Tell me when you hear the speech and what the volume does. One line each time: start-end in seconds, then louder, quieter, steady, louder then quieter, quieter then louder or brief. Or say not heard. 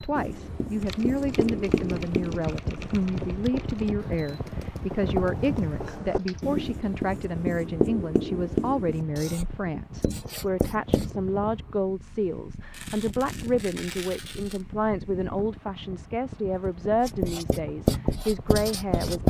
0.0-19.2 steady.